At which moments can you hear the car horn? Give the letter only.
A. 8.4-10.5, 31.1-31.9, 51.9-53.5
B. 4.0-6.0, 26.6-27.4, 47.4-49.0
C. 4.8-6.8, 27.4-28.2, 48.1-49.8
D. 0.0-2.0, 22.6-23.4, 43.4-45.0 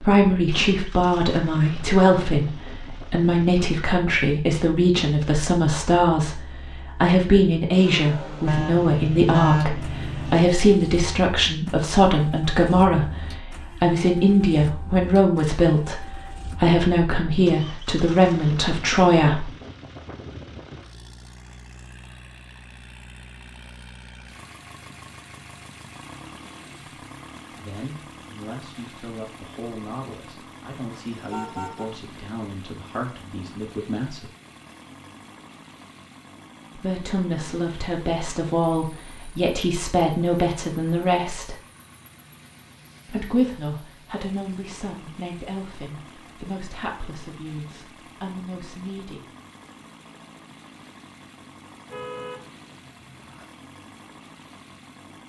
A.